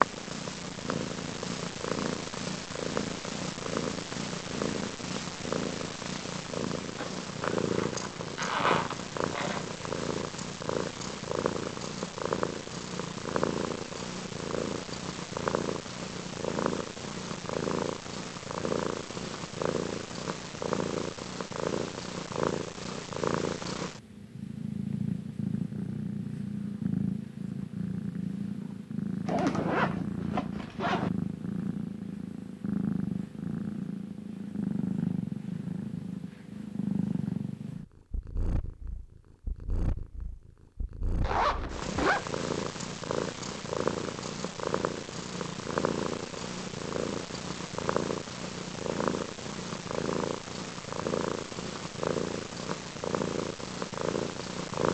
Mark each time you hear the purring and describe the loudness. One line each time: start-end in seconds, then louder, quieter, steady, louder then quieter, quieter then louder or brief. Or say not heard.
0.0-54.8 steady.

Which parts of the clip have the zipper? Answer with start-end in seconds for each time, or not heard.
7.0-9.7, 29.2-31.1, 41.2-42.2.